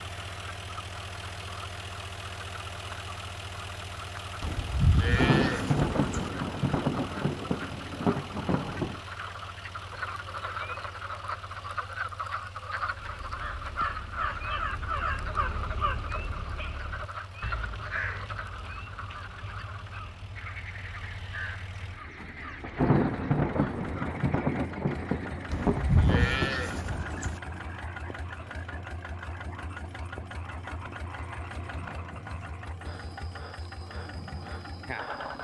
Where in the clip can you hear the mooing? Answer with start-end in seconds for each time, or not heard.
4.4-6.3, 25.5-27.4.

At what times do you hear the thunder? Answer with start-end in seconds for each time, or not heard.
5.0-9.0, 22.6-27.3.